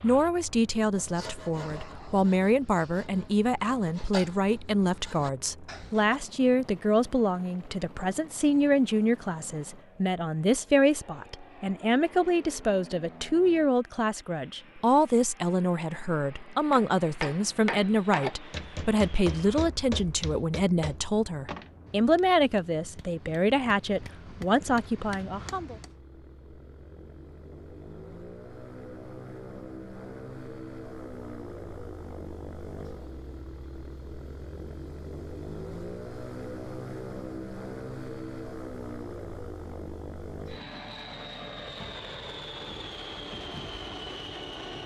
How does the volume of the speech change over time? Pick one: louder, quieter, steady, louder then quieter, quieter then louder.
steady.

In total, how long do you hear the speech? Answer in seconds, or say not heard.
26 s.